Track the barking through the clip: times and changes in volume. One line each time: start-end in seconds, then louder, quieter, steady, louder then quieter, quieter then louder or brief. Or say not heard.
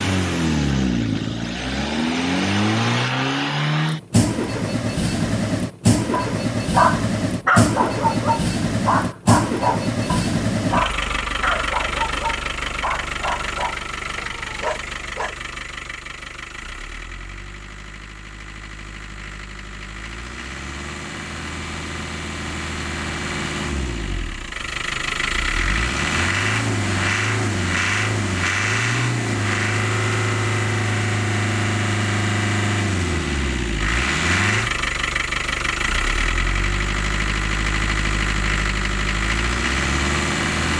6.1-15.4 quieter.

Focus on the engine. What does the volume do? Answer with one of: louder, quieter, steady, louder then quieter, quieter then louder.
quieter then louder.